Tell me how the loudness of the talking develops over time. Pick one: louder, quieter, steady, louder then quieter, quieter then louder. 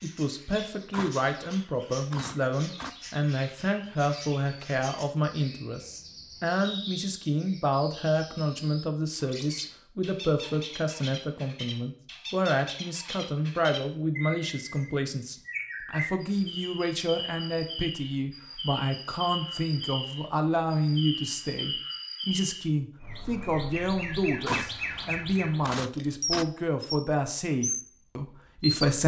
steady.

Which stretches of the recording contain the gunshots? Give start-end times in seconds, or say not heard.
0.9-3.0, 24.4-26.4.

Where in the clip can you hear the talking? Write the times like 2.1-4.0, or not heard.
0.0-29.0.